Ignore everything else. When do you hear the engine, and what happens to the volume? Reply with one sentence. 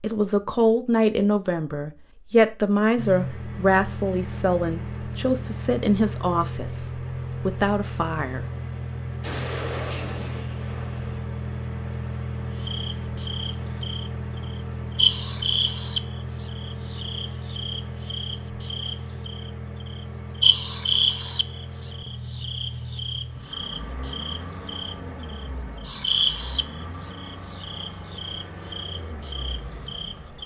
You can hear the engine from 3.0 to 30.4 s, getting quieter.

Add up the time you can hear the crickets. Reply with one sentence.
You can hear the crickets for 18 seconds altogether.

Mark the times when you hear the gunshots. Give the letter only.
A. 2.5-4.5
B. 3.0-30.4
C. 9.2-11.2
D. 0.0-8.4
C.